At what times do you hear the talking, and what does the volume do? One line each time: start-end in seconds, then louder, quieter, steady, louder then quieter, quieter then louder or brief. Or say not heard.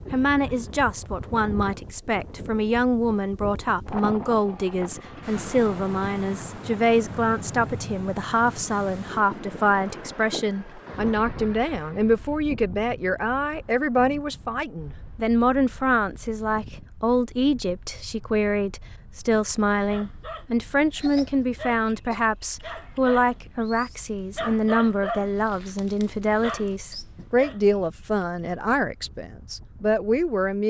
0.1-30.6 steady.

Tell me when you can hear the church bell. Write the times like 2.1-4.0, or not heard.
not heard.